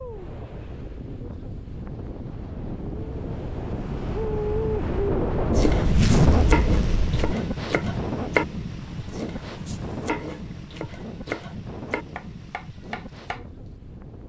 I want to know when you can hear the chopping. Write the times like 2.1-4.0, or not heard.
5.5-13.4.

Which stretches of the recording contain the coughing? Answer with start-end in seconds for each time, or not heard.
not heard.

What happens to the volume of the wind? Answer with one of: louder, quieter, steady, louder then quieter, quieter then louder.
louder then quieter.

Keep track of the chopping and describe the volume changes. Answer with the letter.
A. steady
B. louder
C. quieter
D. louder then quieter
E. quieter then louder
C.